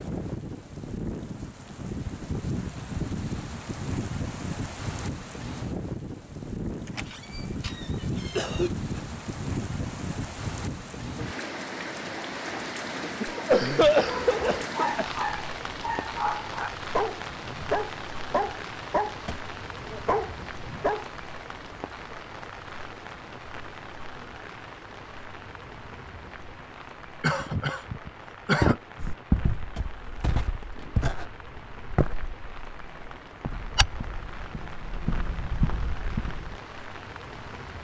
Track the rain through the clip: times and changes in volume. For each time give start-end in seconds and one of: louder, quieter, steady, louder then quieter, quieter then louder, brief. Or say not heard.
0.0-37.7 quieter.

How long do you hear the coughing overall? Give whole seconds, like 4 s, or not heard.
4 s.